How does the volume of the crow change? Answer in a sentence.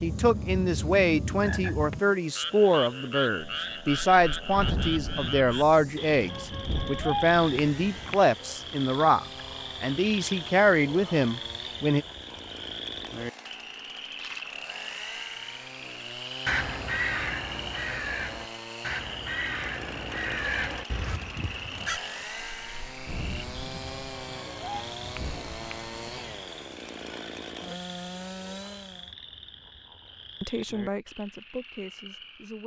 The volume of the crow goes down.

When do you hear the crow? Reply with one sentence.
You can hear the crow from 16.4 to 22.0 s.